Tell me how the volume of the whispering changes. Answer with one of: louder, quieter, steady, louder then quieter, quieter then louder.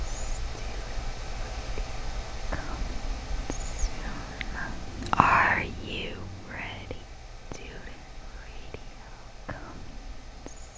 louder then quieter.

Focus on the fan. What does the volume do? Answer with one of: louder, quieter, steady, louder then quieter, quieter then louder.
quieter.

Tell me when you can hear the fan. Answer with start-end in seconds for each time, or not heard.
0.0-10.7.